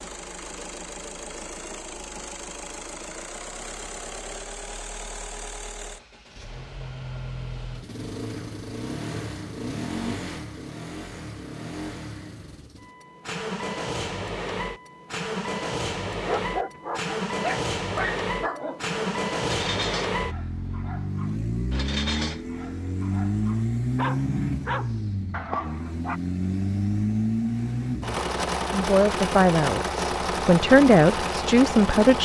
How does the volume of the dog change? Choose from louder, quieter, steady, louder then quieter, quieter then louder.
quieter then louder.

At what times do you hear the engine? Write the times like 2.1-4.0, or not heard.
0.0-32.2.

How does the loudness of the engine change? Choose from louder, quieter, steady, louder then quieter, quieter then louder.
louder.